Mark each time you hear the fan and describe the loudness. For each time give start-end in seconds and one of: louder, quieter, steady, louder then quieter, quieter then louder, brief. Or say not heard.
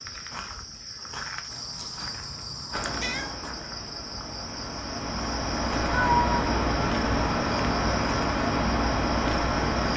2.7-9.9 louder.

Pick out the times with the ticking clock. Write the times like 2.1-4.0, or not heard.
not heard.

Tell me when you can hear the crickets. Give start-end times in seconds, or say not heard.
0.0-9.9.